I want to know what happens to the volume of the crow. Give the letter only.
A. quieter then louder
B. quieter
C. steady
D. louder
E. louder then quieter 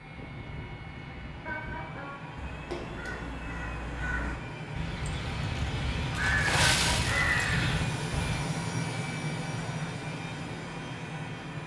D.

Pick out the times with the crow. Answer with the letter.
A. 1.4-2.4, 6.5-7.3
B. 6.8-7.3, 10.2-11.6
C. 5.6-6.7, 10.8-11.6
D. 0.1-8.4
D.